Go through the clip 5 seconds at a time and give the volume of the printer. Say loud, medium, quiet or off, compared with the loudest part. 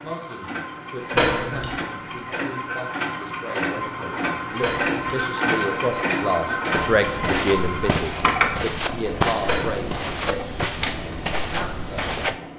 loud, loud, medium.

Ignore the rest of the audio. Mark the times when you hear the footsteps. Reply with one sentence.
The footsteps can be heard from 6.7 to 12.4 s.